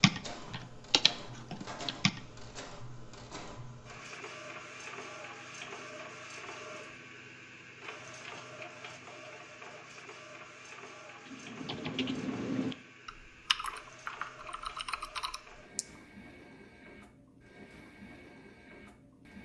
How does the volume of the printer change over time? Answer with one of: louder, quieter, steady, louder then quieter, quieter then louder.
quieter.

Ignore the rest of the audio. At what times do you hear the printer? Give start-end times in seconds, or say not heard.
0.0-19.4.